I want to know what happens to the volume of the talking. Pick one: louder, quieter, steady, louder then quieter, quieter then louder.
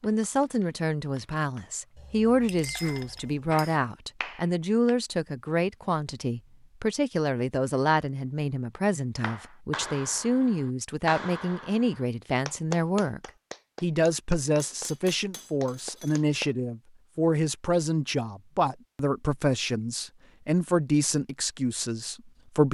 steady.